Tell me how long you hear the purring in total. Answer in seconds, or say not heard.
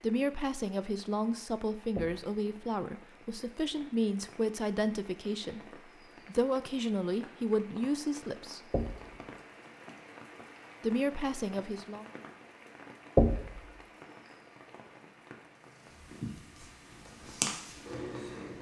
3 s.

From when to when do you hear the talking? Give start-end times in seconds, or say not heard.
0.0-8.7, 10.8-12.1.